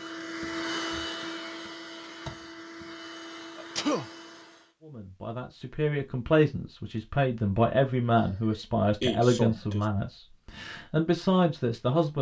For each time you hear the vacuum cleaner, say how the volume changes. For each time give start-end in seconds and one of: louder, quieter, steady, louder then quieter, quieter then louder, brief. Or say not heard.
0.0-4.7 quieter.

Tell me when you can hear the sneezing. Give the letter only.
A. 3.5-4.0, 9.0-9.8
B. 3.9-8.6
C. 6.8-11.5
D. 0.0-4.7
A.